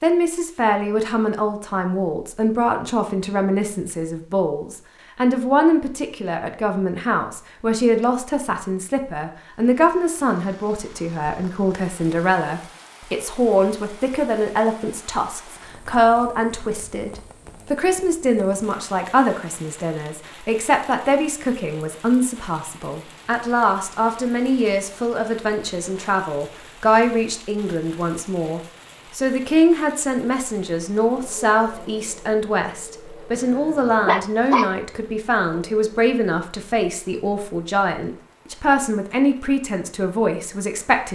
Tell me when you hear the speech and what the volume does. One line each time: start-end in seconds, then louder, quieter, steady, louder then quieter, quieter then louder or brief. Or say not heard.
0.0-41.1 steady.